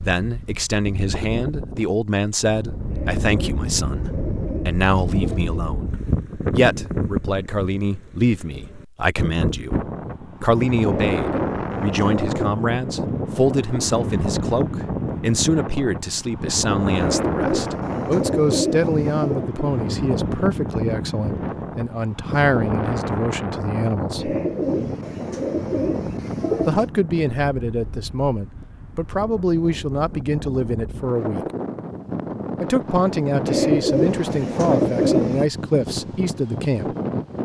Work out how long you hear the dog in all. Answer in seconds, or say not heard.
not heard.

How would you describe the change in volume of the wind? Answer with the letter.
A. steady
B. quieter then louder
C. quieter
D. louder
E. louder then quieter
A.